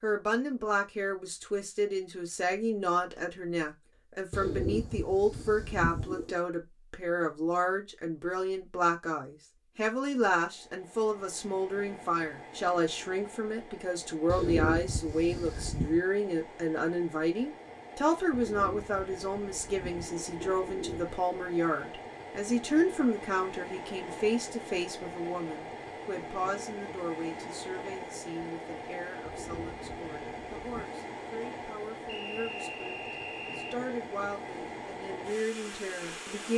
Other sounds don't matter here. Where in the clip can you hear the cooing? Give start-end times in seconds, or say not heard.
4.3-6.3, 14.2-16.0, 18.3-21.2, 29.2-30.9.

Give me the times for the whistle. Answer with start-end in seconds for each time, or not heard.
32.0-33.8.